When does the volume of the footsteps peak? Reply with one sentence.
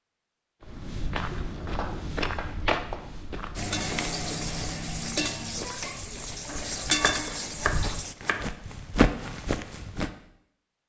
The loudest moment of the footsteps is at 9 seconds.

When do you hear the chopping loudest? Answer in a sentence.
The loudest moment of the chopping is at 8 seconds.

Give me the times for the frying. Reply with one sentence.
The frying can be heard from 3.5 to 8.2 s.